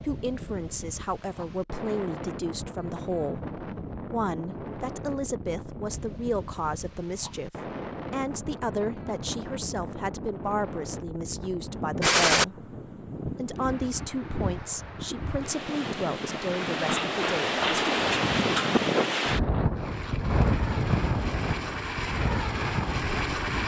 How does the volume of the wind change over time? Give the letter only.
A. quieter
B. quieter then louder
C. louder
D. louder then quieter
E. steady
C.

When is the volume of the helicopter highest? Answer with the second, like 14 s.
23 s.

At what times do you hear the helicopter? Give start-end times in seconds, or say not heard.
19.7-23.6.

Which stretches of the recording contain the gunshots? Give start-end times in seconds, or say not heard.
12.0-12.4.